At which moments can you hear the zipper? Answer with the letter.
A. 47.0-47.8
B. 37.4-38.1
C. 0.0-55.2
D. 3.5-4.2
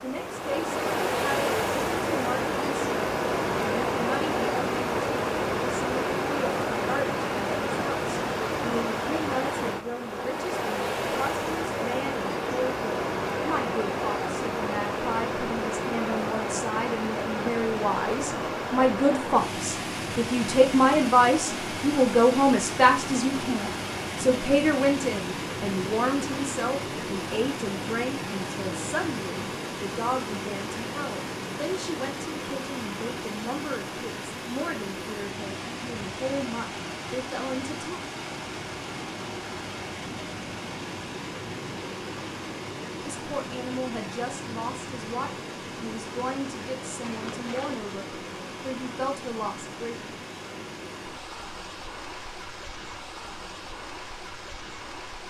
A.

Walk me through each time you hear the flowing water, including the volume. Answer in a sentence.
The flowing water can be heard from 0.0 to 55.2 s, getting quieter.